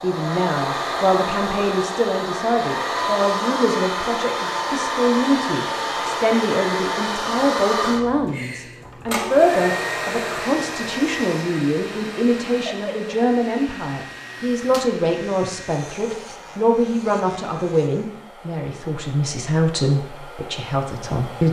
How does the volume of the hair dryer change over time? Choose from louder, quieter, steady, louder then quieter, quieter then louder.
quieter.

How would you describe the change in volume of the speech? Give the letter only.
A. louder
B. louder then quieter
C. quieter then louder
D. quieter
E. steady
E.